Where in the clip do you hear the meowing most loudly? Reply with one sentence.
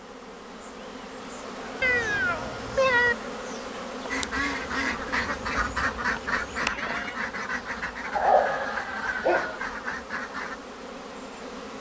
The volume of the meowing peaks at 3 seconds.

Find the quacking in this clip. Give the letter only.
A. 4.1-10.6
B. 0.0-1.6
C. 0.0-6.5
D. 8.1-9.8
A.